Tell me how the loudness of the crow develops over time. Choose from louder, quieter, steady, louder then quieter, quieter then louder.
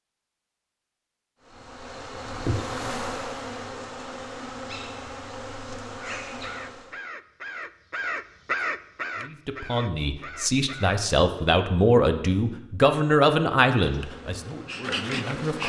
louder then quieter.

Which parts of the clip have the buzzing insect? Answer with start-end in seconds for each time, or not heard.
1.4-7.0, 13.8-15.6.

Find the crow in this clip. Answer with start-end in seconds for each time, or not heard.
6.0-11.0.